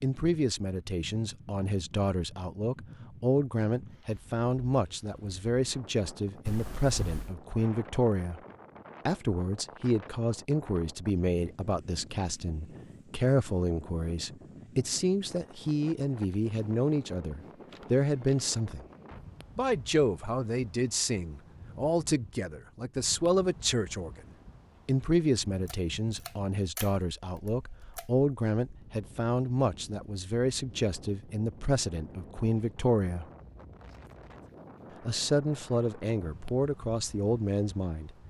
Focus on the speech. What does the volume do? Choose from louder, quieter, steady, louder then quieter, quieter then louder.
steady.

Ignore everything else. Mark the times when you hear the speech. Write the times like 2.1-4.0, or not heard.
0.0-8.4, 9.1-18.9, 19.6-24.2, 24.9-33.2, 35.0-38.1.